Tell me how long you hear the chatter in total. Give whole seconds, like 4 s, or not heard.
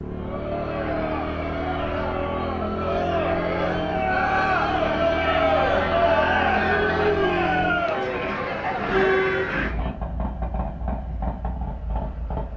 10 s.